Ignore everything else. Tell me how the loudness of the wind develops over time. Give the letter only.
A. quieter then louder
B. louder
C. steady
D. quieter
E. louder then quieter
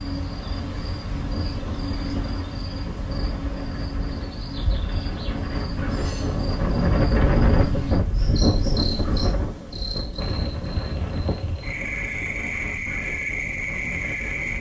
E.